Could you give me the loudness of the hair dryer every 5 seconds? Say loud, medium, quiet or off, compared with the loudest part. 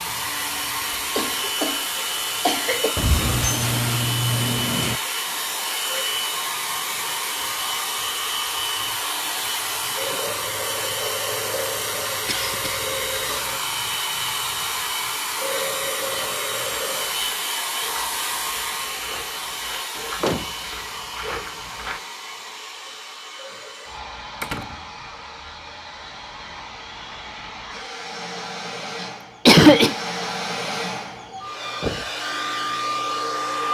loud, loud, loud, loud, medium, medium, loud.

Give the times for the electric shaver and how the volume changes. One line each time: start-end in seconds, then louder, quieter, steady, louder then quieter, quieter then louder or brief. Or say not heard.
not heard.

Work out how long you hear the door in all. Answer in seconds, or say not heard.
3 s.